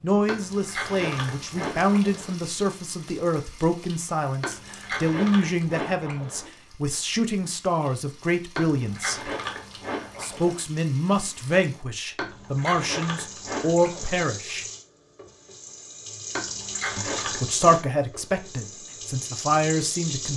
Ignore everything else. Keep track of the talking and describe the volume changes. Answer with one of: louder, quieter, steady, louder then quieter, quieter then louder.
steady.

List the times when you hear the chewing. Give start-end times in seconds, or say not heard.
0.2-2.4, 4.4-6.5, 8.6-10.6, 12.2-14.2, 16.4-17.8.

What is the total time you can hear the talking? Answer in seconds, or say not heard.
17 s.